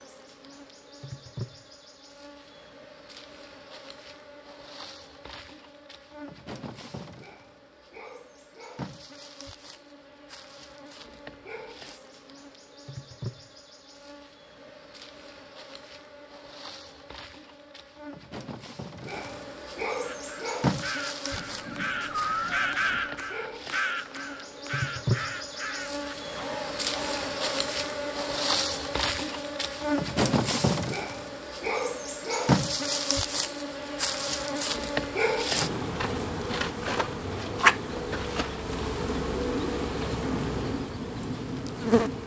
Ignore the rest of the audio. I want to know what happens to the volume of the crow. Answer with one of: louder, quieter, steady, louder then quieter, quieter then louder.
louder then quieter.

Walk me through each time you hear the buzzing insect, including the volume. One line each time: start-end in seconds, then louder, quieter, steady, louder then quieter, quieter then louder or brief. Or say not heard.
0.0-42.2 louder.